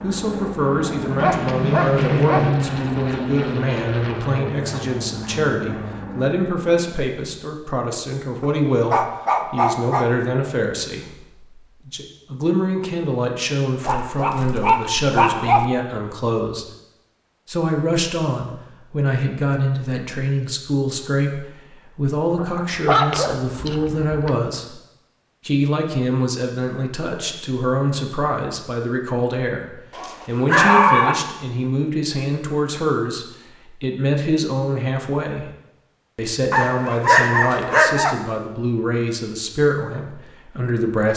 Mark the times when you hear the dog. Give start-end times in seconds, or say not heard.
1.2-2.5, 8.4-10.1, 13.8-15.7, 22.4-24.3, 29.9-31.1, 36.5-38.1.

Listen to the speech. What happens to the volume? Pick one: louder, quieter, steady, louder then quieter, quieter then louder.
steady.